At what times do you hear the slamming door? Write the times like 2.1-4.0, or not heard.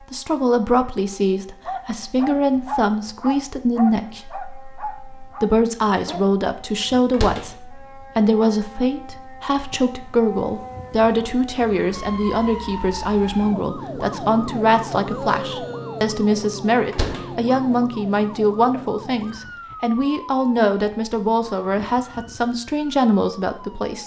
7.1-7.5, 16.9-17.3.